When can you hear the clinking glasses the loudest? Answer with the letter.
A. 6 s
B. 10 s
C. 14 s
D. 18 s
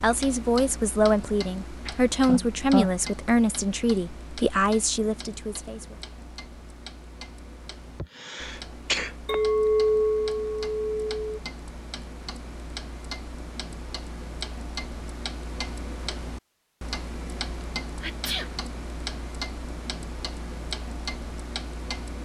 B.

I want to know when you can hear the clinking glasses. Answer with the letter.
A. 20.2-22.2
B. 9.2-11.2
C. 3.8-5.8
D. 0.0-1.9
B.